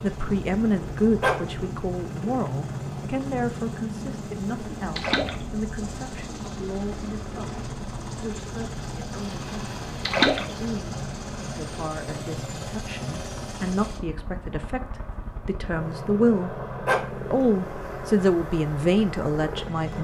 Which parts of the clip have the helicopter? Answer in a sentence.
You can hear the helicopter from 0.0 to 19.9 s.